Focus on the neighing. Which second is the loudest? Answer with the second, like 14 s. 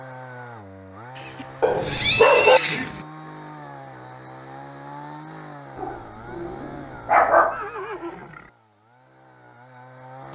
2 s.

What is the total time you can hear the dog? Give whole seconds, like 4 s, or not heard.
3 s.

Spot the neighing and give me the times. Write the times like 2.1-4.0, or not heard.
1.1-3.0, 7.5-8.5.